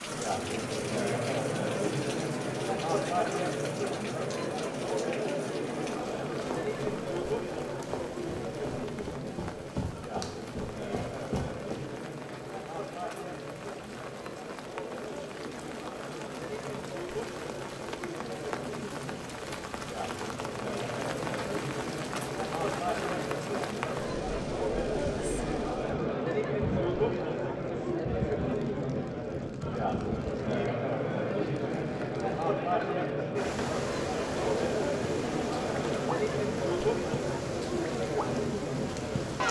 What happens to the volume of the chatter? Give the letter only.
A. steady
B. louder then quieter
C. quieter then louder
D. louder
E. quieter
C.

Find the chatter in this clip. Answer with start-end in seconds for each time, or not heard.
0.0-39.4.